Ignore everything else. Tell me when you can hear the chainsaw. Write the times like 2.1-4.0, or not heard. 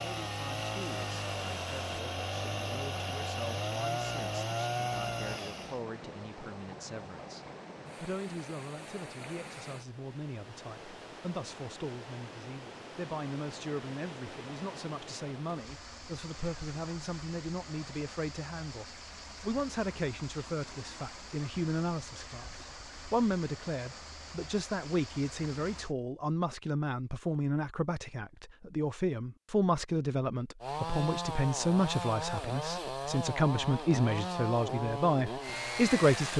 0.0-5.8, 30.6-36.3.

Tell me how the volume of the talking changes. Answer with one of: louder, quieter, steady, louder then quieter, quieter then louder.
louder.